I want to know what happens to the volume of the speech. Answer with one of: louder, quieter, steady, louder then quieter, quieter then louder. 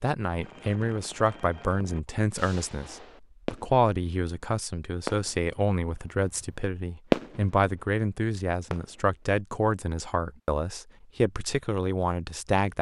steady.